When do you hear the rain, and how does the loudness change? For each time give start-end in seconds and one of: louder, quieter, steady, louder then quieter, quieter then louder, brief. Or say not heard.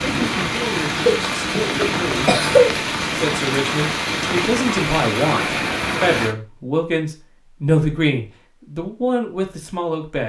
0.0-6.3 steady.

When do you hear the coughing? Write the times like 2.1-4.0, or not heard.
0.9-2.7.